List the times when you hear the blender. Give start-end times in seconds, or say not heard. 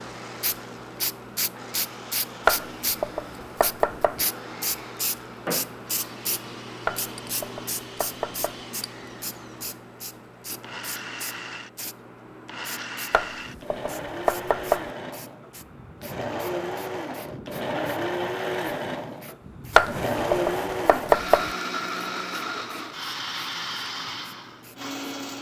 0.0-25.3.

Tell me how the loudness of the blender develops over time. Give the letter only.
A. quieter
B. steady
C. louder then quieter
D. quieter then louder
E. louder
E.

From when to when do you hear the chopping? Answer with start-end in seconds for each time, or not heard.
2.5-4.2, 6.8-8.6, 13.1-14.9, 19.8-21.5.